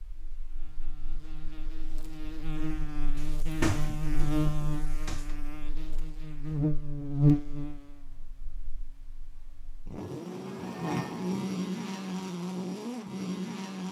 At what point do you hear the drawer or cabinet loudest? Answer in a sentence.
The volume of the drawer or cabinet peaks at 4 seconds.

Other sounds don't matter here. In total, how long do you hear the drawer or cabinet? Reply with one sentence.
The drawer or cabinet can be heard for 2 seconds in total.